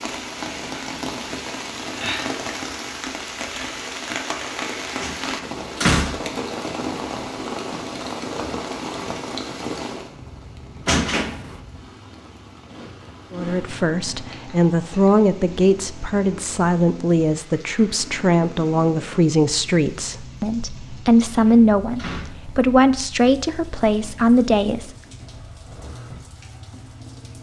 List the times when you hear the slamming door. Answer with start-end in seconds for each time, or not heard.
5.0-6.4, 10.8-11.6, 21.2-22.3.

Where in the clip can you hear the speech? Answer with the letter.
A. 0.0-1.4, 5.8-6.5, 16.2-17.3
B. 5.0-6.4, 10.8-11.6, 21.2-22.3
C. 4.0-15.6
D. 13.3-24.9
D.